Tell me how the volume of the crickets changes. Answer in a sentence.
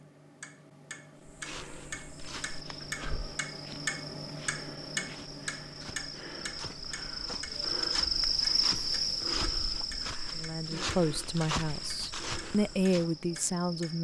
The volume of the crickets goes up, then down.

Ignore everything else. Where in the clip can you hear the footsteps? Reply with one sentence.
You can hear the footsteps from 1.2 to 13.2 s.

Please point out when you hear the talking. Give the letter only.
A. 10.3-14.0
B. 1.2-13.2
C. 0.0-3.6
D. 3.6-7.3
A.